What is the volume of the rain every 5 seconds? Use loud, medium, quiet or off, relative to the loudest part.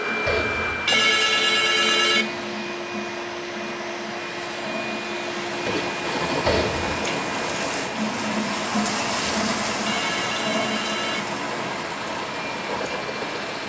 medium, loud, loud.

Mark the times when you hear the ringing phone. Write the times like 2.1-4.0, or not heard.
0.2-2.2, 6.5-6.9, 9.2-11.2.